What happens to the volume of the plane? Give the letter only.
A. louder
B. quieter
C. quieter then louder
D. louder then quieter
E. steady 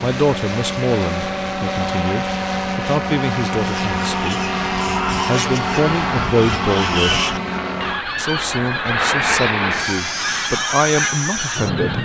E.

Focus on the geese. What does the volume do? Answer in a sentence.
The loudness of the geese stays about the same.